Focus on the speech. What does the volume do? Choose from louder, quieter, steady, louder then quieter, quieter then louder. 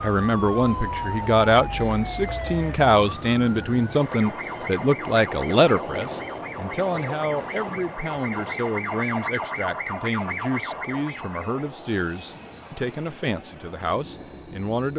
quieter.